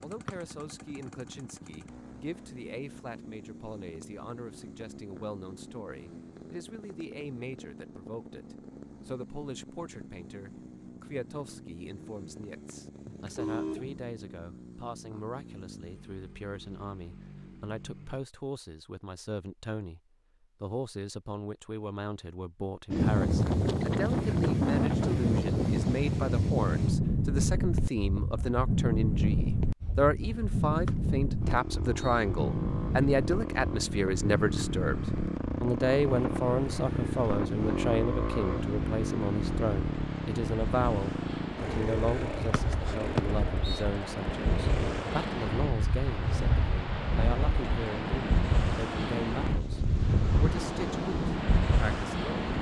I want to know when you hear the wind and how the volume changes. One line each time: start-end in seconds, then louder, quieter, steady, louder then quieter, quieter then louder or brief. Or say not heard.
22.9-52.5 quieter then louder.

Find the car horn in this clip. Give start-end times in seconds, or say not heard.
13.1-14.0.